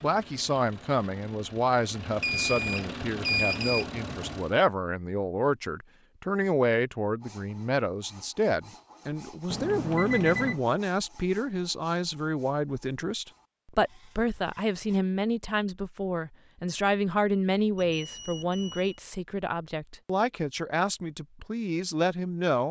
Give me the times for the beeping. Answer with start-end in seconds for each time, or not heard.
2.2-3.9, 9.5-10.6, 17.8-19.0.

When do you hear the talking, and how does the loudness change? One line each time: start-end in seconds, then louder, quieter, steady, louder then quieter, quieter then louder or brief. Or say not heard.
0.0-22.6 steady.